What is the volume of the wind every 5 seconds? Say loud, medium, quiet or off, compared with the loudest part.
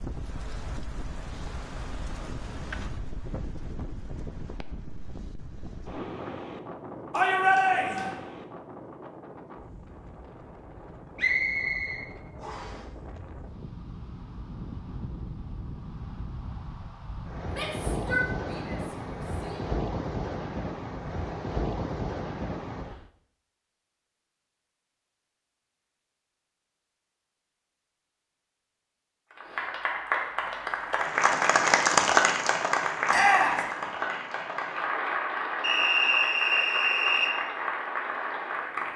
medium, medium, medium, loud, loud, off, off, off.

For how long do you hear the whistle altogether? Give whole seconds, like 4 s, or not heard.
3 s.